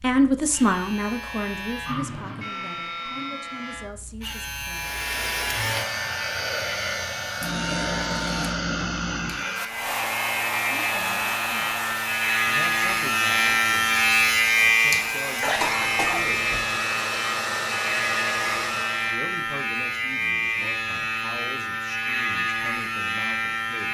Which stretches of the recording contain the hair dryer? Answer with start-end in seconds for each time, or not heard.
4.7-19.2.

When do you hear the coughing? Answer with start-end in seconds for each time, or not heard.
15.4-16.8.